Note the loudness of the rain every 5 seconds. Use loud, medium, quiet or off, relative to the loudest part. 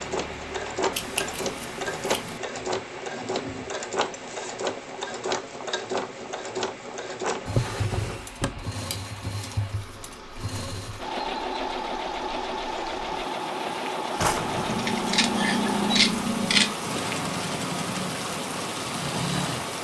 medium, quiet, medium, loud.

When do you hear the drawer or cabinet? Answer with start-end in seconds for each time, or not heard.
2.5-3.7, 7.5-8.7, 14.2-14.9.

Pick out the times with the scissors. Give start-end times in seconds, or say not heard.
0.9-2.4, 8.8-9.8, 14.7-16.8.